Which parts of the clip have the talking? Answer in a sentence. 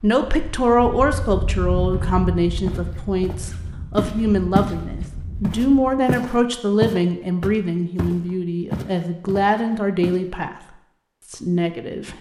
The talking can be heard from 0.0 to 10.6 s and from 11.3 to 12.1 s.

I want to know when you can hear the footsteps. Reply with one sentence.
You can hear the footsteps from 1.9 to 10.2 s.